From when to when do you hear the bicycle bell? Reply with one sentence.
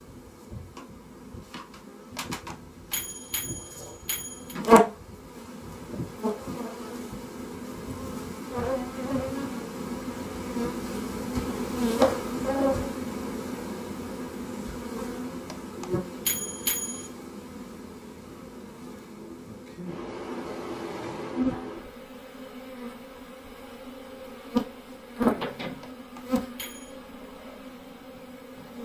The bicycle bell can be heard from 2.1 to 4.5 s, from 15.5 to 17.1 s and from 25.8 to 26.9 s.